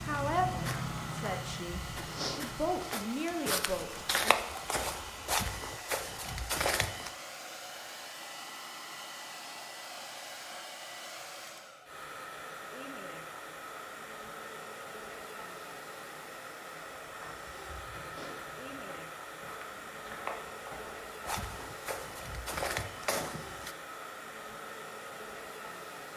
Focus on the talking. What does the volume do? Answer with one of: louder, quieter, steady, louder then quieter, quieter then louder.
quieter then louder.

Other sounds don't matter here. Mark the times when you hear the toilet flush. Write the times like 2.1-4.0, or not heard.
not heard.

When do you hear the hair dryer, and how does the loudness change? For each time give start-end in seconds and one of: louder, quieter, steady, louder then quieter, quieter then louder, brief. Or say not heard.
0.0-26.1 steady.